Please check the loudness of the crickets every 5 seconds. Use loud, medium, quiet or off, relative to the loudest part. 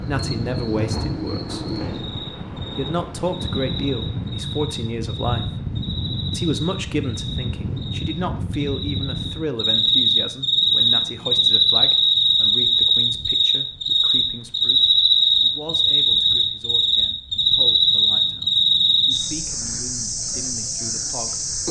quiet, medium, loud, loud, medium.